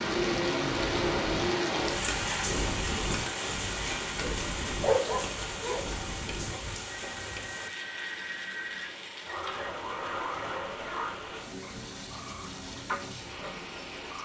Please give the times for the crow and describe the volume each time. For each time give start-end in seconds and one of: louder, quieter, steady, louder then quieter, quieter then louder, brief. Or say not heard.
not heard.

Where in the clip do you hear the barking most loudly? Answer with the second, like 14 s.
5 s.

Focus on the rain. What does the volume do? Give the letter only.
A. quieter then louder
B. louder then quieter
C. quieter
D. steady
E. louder
C.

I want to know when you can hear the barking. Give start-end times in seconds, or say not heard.
4.8-7.5.